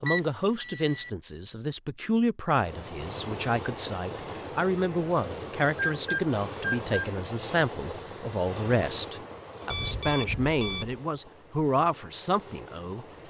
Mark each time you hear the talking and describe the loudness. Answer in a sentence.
You can hear the talking from 0.0 to 13.1 s, at a steady volume.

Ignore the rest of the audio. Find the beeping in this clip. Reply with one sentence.
The beeping can be heard from 0.1 to 1.1 s, from 5.8 to 7.0 s and from 9.7 to 11.0 s.